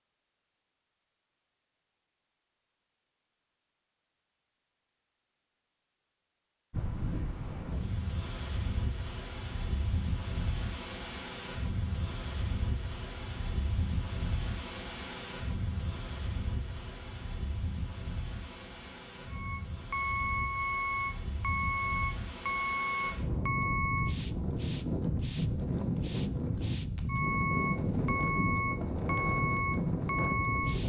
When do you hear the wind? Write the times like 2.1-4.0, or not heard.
6.7-30.8.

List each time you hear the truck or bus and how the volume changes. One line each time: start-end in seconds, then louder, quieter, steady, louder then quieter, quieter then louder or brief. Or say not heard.
19.3-30.8 quieter then louder.